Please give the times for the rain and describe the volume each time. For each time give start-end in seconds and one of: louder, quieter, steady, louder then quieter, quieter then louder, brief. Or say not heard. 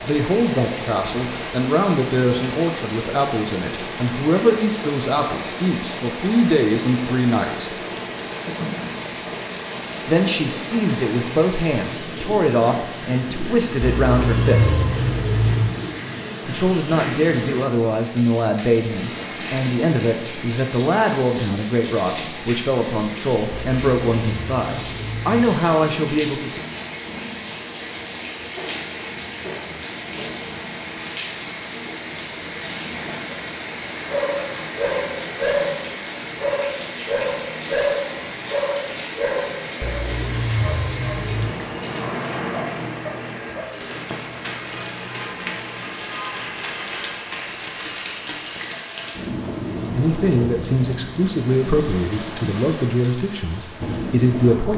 0.0-54.7 steady.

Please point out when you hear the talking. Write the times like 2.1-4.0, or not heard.
0.1-7.8, 10.1-14.8, 16.4-26.6, 50.0-54.7.